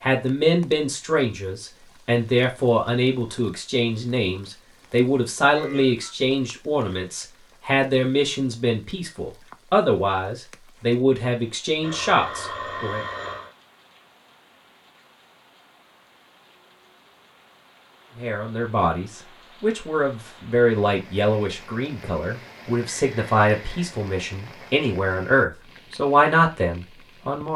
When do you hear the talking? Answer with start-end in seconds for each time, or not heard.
0.0-13.1, 18.1-27.5.